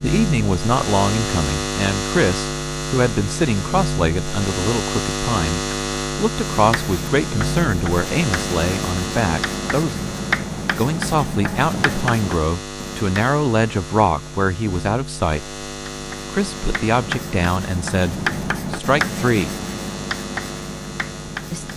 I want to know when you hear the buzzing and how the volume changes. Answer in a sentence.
The buzzing can be heard from 0.0 to 21.7 s, getting quieter.